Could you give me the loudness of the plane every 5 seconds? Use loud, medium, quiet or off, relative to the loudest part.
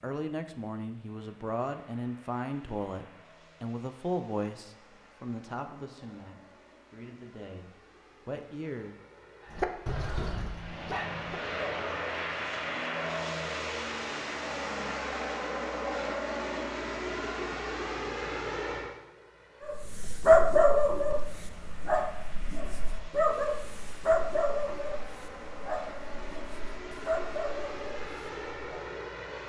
quiet, quiet, loud, loud, quiet, medium.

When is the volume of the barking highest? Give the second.
20 s.